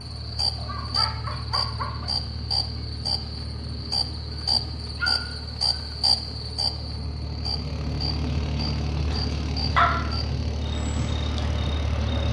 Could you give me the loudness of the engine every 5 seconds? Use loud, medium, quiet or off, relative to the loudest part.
medium, loud, loud.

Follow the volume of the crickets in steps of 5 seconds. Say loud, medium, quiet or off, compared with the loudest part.
loud, loud, medium.